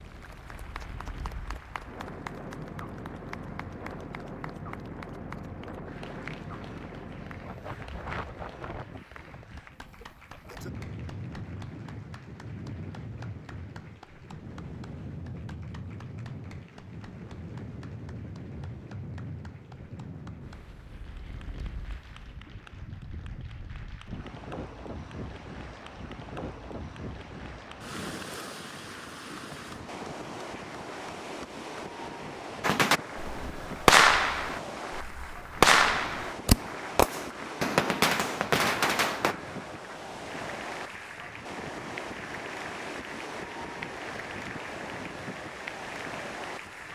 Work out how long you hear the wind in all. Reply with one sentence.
The wind can be heard for 47 seconds in total.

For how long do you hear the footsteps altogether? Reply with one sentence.
The footsteps can't be heard in this clip.